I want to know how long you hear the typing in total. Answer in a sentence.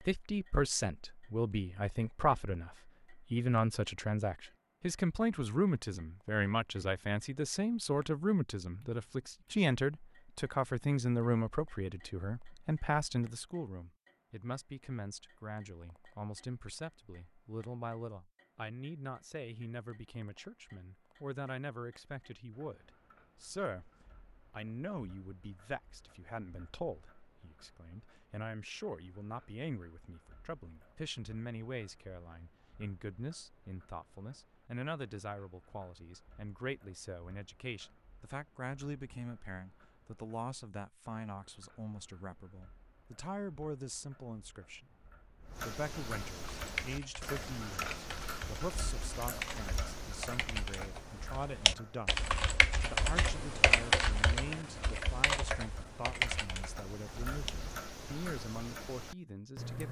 You can hear the typing for 11 seconds altogether.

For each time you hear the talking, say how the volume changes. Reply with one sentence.
You can hear the talking from 0.0 to 59.8 s, getting quieter.